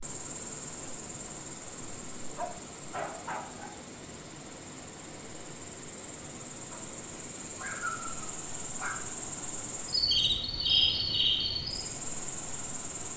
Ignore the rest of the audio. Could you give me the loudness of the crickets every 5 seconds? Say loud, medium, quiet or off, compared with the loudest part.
quiet, medium, loud.